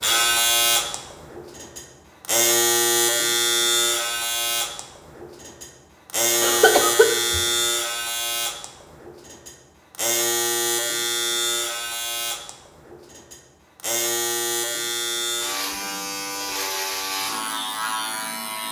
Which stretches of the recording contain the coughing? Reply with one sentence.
You can hear the coughing from 6.4 to 7.5 s.